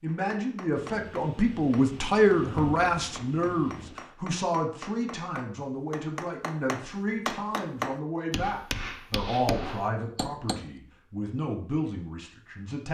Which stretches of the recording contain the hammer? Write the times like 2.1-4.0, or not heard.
0.1-10.7.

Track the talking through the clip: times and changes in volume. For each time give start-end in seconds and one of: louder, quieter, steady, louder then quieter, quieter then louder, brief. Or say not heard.
0.0-12.9 quieter.